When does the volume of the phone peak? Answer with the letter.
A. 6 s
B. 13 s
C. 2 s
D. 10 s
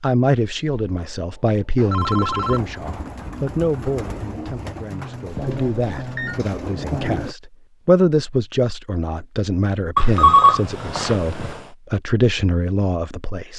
D.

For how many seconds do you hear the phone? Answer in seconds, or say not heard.
5 s.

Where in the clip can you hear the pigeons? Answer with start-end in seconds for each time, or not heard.
1.9-7.3.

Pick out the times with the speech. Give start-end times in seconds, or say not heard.
0.0-13.5.